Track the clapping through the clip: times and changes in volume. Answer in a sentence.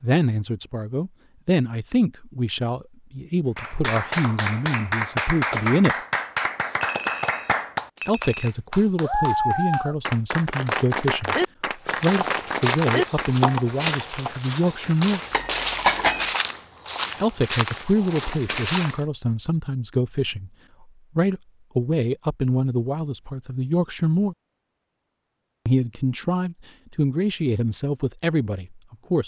You can hear the clapping from 3.5 to 13.7 s, at a steady volume.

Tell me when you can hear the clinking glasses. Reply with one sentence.
You can hear the clinking glasses from 6.8 to 8.5 s and from 15.3 to 16.3 s.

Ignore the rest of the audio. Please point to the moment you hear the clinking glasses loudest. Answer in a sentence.
The volume of the clinking glasses peaks at 16 seconds.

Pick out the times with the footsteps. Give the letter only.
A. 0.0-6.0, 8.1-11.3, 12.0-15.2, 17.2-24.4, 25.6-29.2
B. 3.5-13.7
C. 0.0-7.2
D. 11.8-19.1
D.